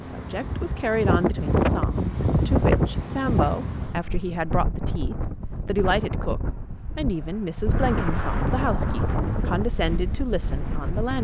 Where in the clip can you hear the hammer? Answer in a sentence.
The hammer can't be heard in this clip.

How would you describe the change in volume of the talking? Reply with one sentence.
The volume of the talking stays about the same.